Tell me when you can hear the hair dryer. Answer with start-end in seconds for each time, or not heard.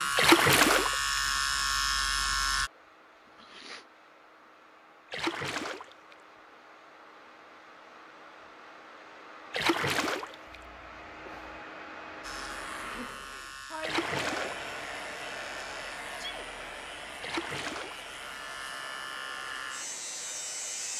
0.0-20.9.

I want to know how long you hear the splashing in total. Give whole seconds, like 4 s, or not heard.
5 s.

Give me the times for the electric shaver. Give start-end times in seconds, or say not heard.
0.0-2.7, 12.2-20.9.